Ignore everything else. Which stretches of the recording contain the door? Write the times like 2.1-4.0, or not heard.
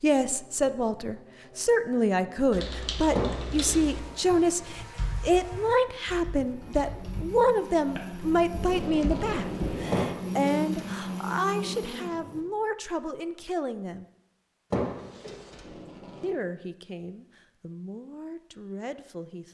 3.1-4.0, 9.9-11.3, 14.7-15.6.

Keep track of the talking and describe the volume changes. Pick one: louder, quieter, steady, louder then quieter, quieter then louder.
quieter.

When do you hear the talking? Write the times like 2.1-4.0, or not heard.
0.0-14.1, 16.2-19.4.